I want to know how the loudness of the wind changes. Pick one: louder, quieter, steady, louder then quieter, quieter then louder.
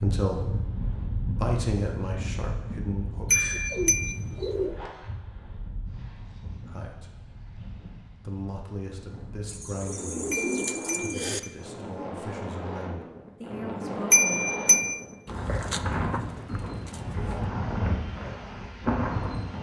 quieter then louder.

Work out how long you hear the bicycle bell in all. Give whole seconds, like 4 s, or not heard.
3 s.